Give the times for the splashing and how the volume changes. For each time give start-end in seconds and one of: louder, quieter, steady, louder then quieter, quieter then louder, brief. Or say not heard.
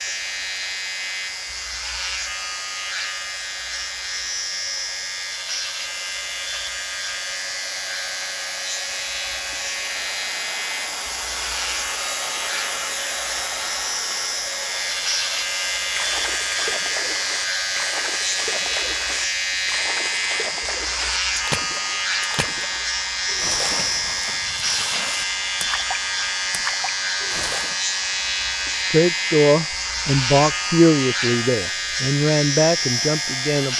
15.9-27.8 steady.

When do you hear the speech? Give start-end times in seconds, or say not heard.
28.9-33.7.